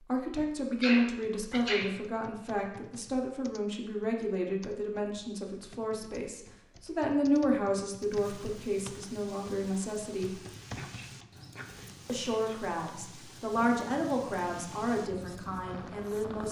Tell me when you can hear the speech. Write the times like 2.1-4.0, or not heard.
0.1-10.4, 12.1-16.4.